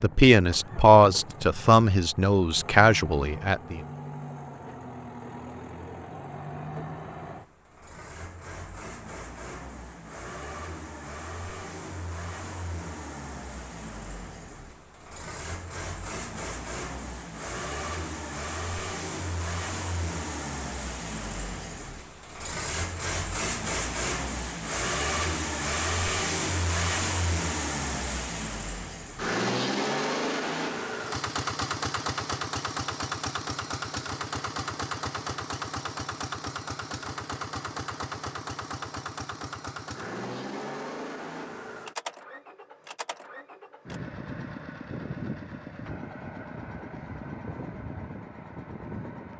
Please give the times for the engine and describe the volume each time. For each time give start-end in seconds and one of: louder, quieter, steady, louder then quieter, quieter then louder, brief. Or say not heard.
0.0-49.3 louder then quieter.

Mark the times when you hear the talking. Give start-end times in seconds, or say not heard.
0.0-3.8.